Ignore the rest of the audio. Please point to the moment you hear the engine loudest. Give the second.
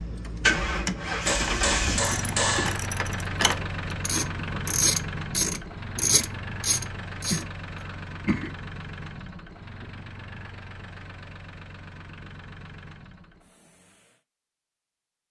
1 s.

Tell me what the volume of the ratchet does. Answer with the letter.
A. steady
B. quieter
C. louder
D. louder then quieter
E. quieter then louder
C.